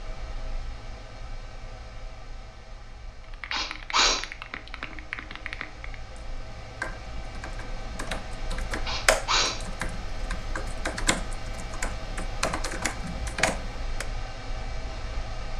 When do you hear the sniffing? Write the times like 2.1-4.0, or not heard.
3.5-4.2, 8.8-9.6.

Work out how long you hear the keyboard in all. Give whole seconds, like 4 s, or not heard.
11 s.